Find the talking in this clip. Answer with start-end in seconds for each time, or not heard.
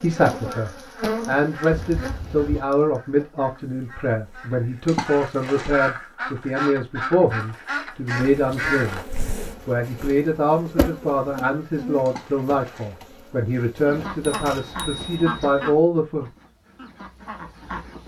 0.0-9.0, 9.7-16.3.